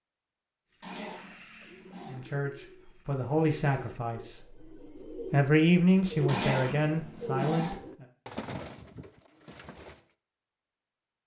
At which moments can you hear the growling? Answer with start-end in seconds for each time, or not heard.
0.8-2.2, 6.2-7.8.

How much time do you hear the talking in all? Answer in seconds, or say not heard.
6 s.